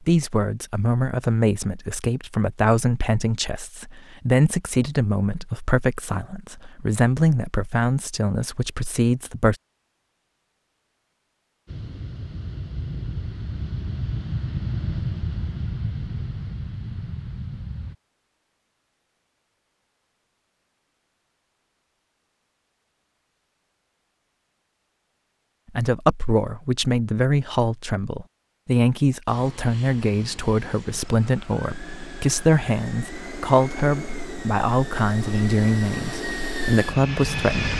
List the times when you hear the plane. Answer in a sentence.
The plane can be heard from 11.7 to 17.9 s and from 29.2 to 37.7 s.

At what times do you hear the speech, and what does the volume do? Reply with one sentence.
The speech can be heard from 0.1 to 9.6 s, at a steady volume; and from 25.8 to 37.7 s, at a steady volume.